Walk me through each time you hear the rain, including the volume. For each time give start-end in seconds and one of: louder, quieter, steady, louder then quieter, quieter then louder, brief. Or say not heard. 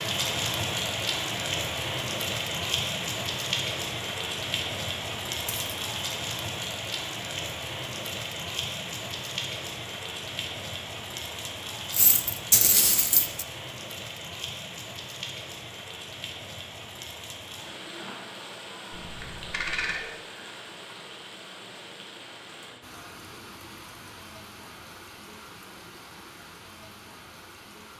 0.0-27.9 quieter.